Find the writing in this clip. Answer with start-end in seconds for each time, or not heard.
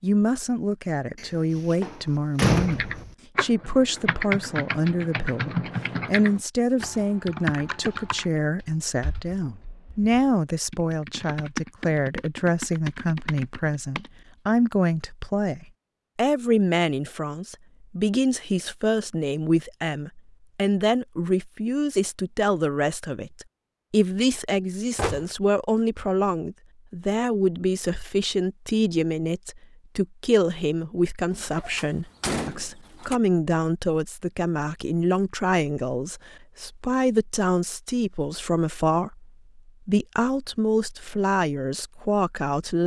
not heard.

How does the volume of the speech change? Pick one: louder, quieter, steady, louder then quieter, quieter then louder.
steady.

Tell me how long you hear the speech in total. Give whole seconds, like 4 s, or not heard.
43 s.